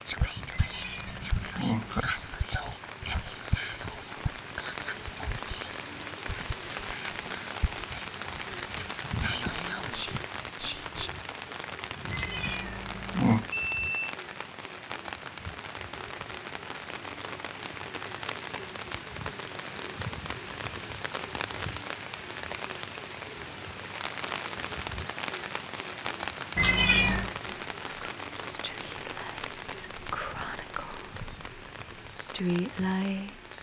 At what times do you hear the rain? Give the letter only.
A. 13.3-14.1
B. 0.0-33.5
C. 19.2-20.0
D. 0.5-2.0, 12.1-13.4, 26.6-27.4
B.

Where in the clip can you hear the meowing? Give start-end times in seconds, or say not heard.
0.5-2.0, 12.1-13.4, 26.6-27.4.